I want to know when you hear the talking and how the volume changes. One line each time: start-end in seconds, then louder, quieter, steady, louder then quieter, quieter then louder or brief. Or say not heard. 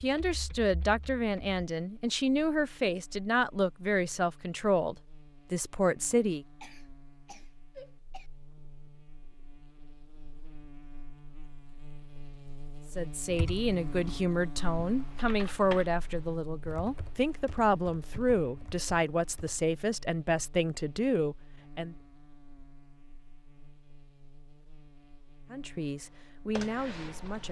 0.0-6.5 steady
12.9-21.9 steady
25.5-27.4 brief.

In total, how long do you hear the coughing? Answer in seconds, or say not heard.
2 s.